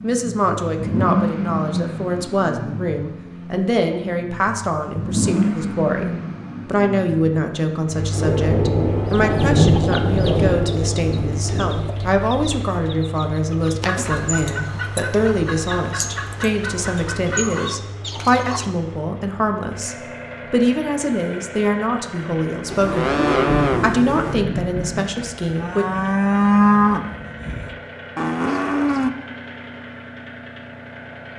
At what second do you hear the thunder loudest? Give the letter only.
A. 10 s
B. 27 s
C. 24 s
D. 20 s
A.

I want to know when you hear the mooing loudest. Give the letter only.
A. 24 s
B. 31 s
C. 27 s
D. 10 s
C.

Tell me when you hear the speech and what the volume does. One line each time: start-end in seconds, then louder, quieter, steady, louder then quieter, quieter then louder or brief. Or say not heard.
0.0-25.9 steady.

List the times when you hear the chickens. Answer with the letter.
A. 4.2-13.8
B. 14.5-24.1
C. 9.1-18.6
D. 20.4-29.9
C.